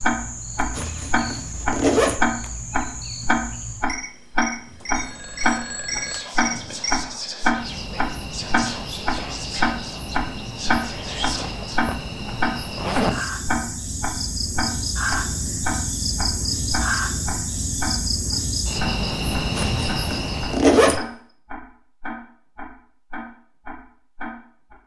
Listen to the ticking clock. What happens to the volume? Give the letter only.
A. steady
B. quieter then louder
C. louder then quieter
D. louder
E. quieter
E.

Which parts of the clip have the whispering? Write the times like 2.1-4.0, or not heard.
6.0-11.8.